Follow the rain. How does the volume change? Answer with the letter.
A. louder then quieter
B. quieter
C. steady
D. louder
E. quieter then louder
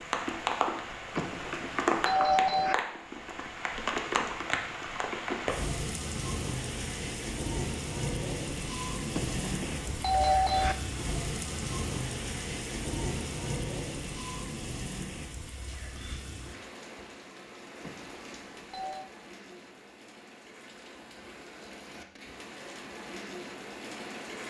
B.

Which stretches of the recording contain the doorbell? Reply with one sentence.
You can hear the doorbell from 1.1 to 2.8 s, from 9.1 to 10.8 s and from 17.8 to 19.1 s.